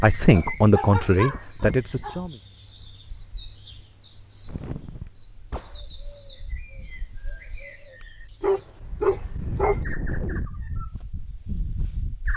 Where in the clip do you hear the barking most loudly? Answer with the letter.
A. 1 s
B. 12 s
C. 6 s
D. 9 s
D.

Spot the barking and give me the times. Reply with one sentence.
The barking can be heard from 0.3 to 2.2 s and from 8.4 to 9.8 s.